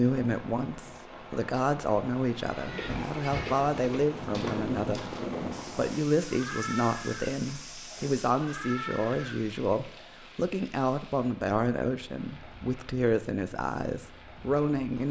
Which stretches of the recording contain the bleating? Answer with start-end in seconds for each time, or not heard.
2.3-10.1.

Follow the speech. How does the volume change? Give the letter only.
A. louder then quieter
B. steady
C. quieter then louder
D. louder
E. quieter
B.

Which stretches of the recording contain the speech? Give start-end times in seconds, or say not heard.
0.0-5.0, 5.8-15.0.